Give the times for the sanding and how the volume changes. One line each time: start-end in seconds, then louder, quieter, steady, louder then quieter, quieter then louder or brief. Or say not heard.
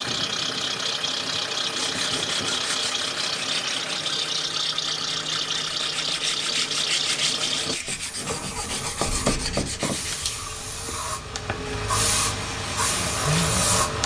1.8-10.4 quieter then louder.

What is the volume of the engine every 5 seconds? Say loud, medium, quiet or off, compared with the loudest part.
loud, loud, medium.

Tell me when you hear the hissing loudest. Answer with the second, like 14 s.
13 s.